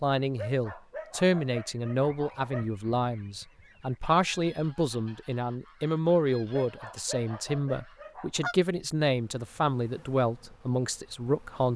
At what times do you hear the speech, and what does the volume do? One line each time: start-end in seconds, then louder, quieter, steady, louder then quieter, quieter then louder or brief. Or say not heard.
0.0-11.7 steady.